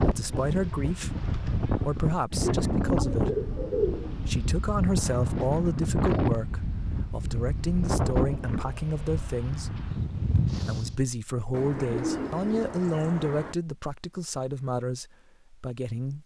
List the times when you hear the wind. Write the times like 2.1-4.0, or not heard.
0.0-11.1.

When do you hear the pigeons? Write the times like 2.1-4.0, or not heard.
2.6-4.3, 11.5-13.6.